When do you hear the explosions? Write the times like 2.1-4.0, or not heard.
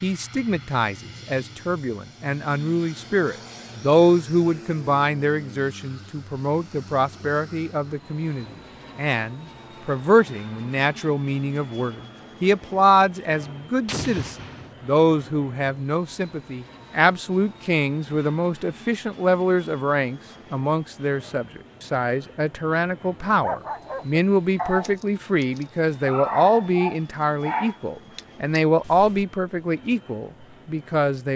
13.8-14.8.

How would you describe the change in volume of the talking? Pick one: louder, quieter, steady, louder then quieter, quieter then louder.
steady.